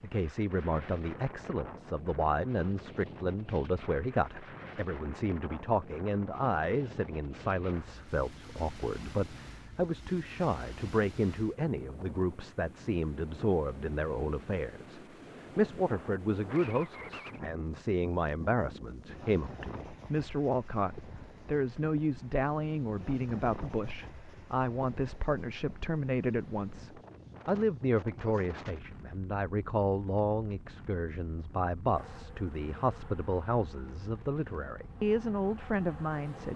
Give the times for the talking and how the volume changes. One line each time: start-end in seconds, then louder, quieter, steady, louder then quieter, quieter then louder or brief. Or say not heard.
0.0-36.5 steady.